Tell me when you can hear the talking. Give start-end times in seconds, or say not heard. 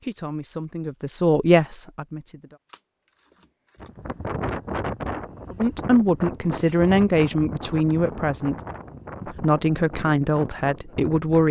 0.0-2.5, 5.5-8.6, 9.2-11.4.